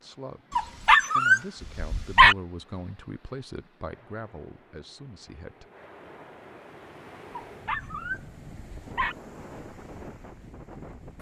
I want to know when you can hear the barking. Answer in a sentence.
The barking can be heard from 0.6 to 2.4 s and from 7.3 to 9.2 s.